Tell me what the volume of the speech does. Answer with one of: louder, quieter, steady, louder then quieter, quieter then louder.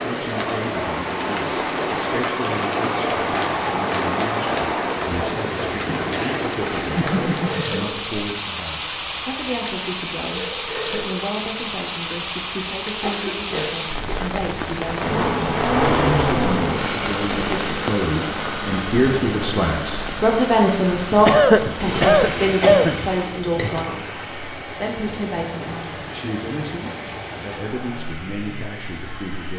louder then quieter.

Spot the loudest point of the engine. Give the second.
16 s.